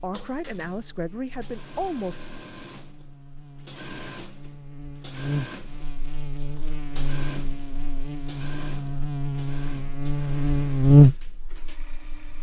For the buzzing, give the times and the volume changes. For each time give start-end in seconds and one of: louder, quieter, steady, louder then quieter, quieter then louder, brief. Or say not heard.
0.0-12.3 louder.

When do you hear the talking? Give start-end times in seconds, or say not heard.
0.0-2.2.